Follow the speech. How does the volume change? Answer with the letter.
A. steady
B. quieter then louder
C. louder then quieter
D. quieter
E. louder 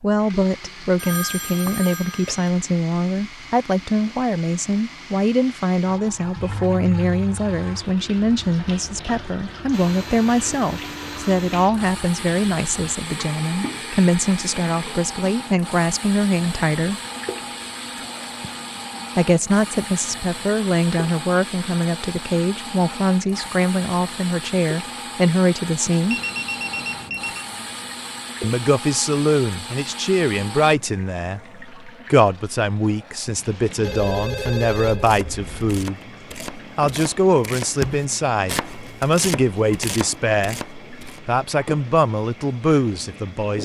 A.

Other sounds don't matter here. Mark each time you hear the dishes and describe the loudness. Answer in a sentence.
You can't hear the dishes here.